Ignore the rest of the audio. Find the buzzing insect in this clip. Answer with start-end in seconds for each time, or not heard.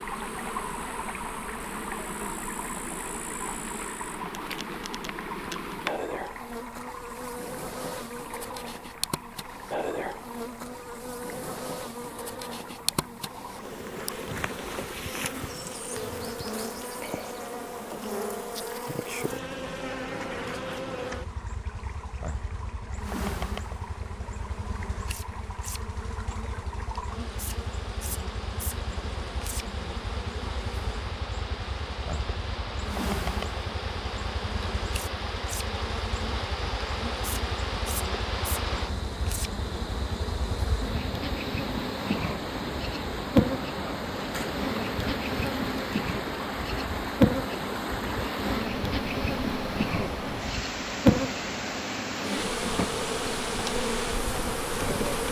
0.0-55.2.